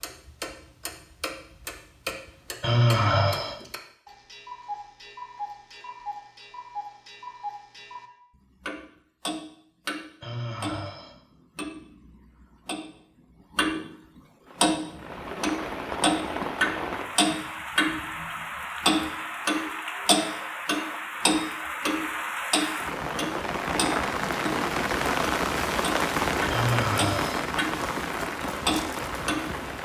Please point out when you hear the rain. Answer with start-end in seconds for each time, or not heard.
14.4-29.8.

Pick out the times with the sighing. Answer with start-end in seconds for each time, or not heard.
2.6-3.5, 10.2-11.1, 26.5-27.4.